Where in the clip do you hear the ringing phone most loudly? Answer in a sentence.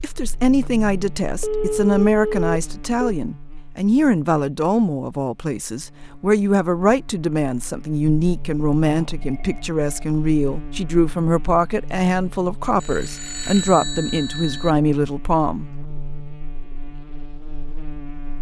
The volume of the ringing phone peaks at 2 seconds.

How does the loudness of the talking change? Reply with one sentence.
The volume of the talking stays about the same.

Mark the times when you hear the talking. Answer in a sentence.
You can hear the talking from 0.0 to 15.7 s.